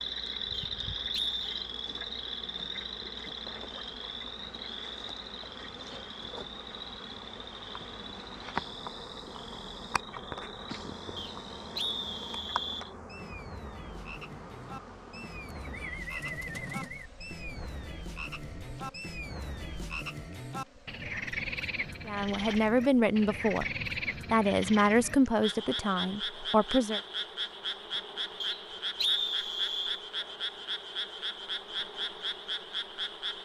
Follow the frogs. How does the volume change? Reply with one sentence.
The loudness of the frogs goes down, then up.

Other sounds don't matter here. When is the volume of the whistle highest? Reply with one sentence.
The volume of the whistle peaks at 29 seconds.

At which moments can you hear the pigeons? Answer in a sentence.
The pigeons can be heard from 15.2 to 17.1 s.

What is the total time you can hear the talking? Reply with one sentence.
You can hear the talking for 4 seconds altogether.